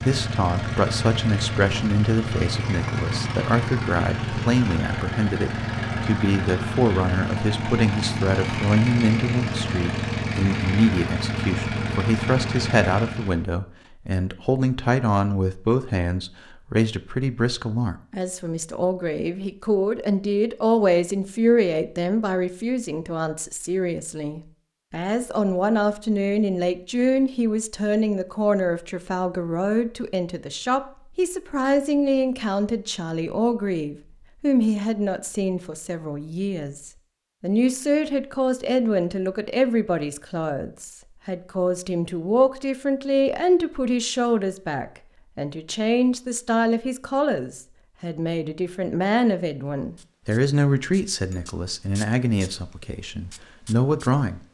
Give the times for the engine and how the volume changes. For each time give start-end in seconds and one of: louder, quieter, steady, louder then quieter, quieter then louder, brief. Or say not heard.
0.0-13.4 steady.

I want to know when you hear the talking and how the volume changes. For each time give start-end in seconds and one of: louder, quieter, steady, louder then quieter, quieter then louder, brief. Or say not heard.
0.0-54.4 steady.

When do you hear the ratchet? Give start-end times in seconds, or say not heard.
not heard.